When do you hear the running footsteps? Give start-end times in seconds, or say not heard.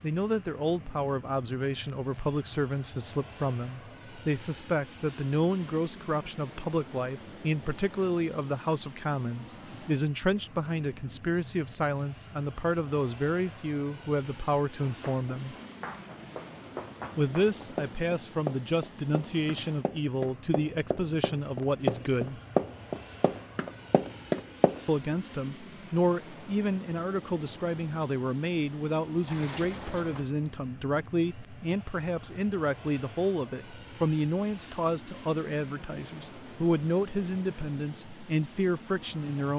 14.8-24.8.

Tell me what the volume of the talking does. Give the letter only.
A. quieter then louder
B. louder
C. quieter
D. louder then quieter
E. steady
E.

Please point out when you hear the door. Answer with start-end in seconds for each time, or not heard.
29.2-30.2.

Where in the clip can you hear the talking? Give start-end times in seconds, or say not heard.
0.0-15.6, 17.1-22.4, 24.9-39.5.